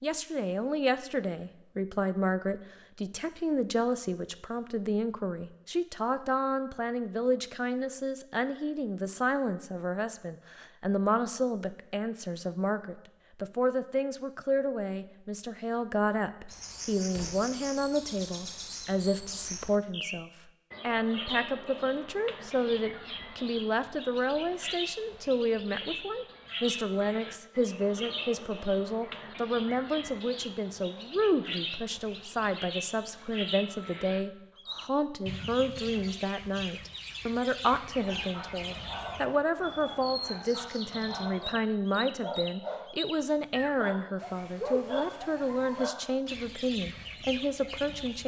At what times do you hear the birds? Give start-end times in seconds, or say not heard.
16.4-48.2.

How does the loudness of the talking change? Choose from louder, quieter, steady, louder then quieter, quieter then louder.
steady.